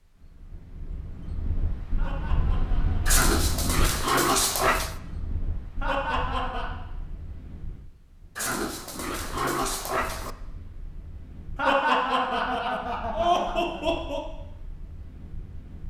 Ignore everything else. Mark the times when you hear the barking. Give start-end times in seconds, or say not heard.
3.0-5.0, 8.3-10.3.